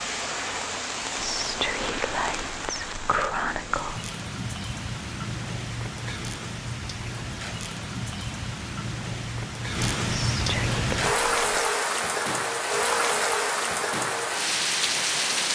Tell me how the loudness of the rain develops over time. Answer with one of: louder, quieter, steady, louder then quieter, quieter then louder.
louder.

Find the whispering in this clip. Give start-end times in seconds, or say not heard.
1.1-4.0, 10.1-11.7.